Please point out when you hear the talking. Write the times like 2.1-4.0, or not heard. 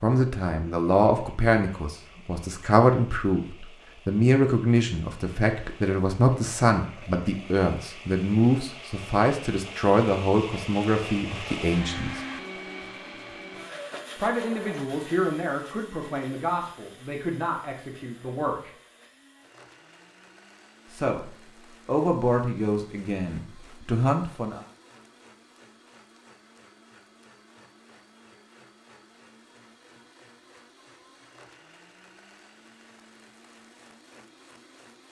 0.0-12.2, 14.2-18.7, 20.9-24.6.